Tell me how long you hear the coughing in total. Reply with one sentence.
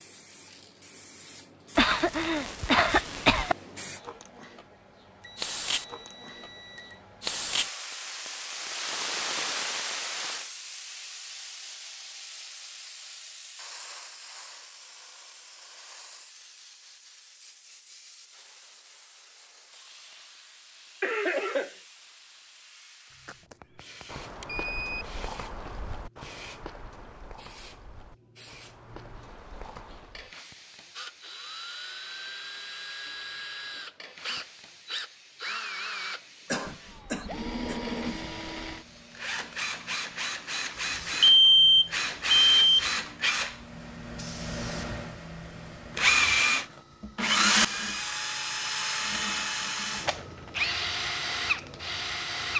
The coughing can be heard for 4 seconds in total.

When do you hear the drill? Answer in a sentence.
The drill can be heard from 30.9 to 52.5 s.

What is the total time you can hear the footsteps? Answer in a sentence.
You can hear the footsteps for 7 seconds altogether.